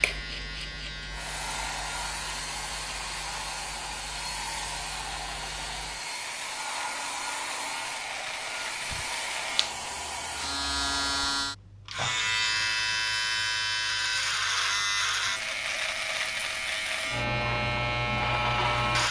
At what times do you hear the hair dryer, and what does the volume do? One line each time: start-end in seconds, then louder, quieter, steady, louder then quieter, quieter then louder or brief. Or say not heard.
0.0-11.6 steady.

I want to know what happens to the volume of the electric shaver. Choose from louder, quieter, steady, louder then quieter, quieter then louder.
louder.